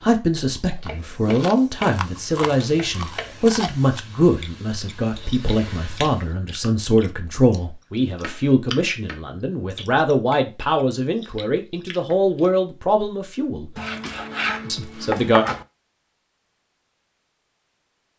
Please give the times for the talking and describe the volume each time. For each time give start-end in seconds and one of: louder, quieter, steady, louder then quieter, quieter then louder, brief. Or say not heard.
0.0-13.7 steady
14.7-15.4 brief.